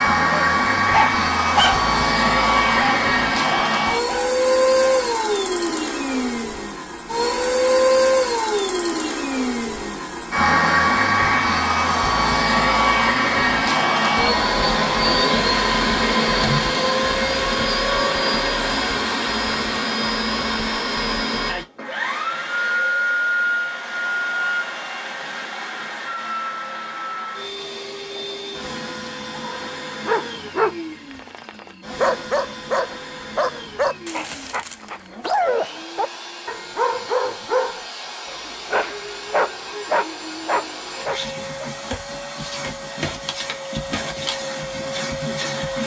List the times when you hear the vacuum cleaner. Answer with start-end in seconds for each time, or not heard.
0.0-45.8.